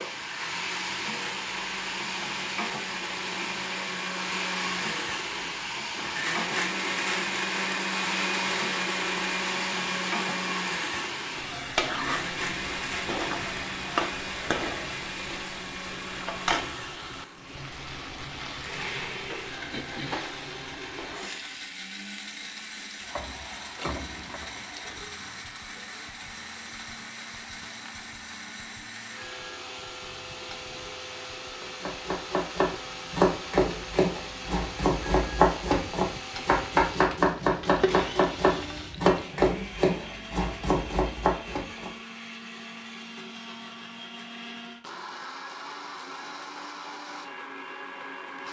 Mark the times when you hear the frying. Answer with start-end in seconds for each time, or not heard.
0.0-39.3.